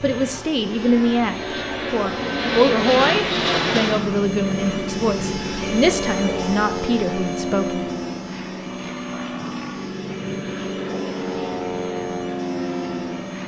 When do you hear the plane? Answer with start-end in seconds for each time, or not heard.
0.0-13.4.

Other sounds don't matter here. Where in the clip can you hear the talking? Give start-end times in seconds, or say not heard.
0.0-7.8.